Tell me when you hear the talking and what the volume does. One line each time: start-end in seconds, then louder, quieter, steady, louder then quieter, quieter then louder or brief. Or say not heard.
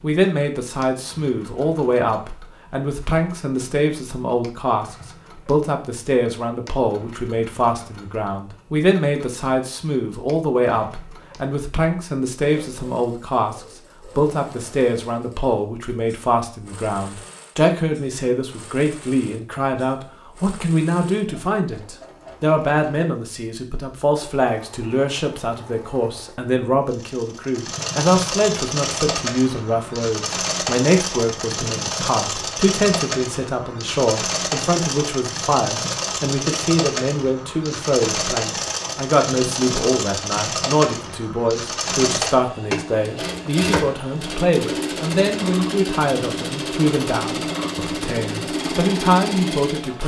0.0-50.0 steady.